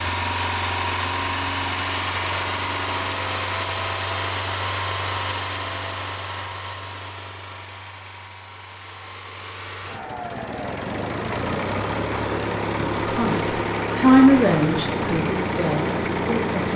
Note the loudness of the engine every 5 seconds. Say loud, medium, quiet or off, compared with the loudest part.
loud, medium, loud, loud.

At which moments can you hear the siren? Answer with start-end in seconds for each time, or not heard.
not heard.